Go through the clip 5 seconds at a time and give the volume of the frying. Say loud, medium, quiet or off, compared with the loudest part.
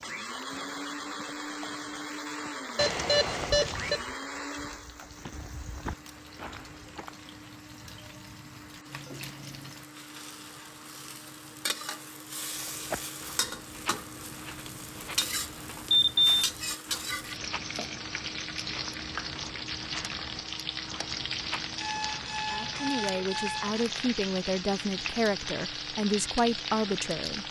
quiet, quiet, medium, loud, loud, loud.